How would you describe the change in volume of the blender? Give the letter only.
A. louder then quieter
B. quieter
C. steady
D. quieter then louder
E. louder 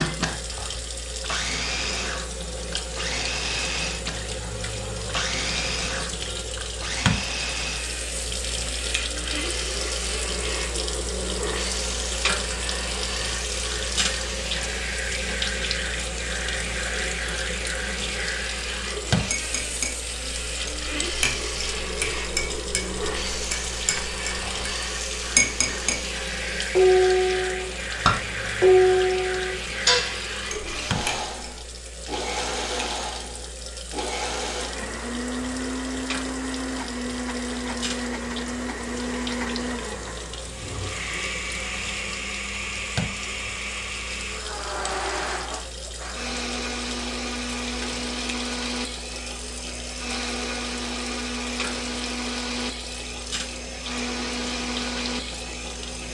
C.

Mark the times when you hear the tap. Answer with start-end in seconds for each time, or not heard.
0.0-56.1.